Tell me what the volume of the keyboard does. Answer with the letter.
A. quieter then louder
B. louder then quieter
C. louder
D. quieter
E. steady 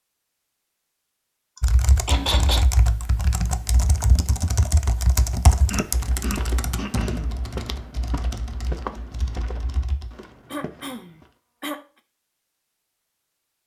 D.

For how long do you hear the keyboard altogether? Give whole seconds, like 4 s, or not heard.
9 s.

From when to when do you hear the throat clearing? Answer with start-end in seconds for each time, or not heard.
1.6-2.6, 5.7-7.3, 10.1-11.8.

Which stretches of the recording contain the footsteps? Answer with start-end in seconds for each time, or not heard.
5.8-11.3.